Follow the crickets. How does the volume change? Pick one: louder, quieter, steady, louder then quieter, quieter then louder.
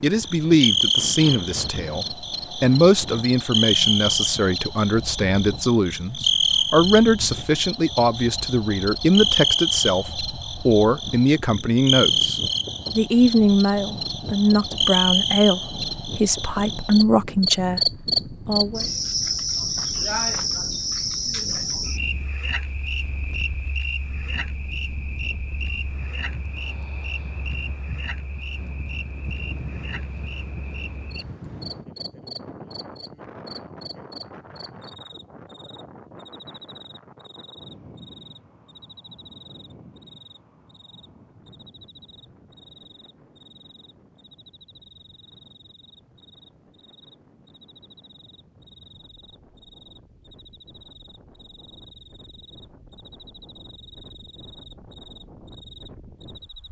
quieter.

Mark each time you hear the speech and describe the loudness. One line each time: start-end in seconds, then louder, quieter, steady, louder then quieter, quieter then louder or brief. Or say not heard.
0.0-18.9 steady.